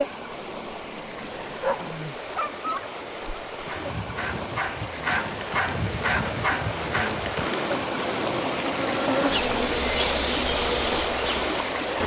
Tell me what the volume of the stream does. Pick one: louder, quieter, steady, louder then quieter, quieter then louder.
louder.